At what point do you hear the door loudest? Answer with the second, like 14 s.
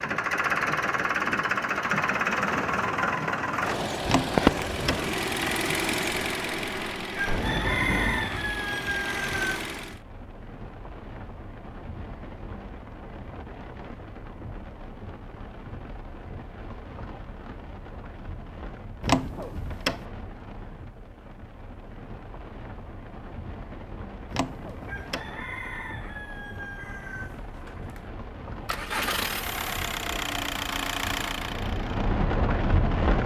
19 s.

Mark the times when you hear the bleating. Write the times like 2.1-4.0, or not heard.
not heard.